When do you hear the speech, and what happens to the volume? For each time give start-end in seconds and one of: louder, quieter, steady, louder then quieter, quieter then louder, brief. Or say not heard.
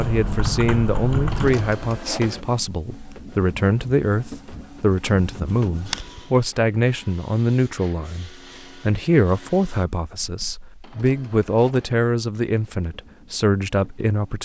0.0-14.3 steady.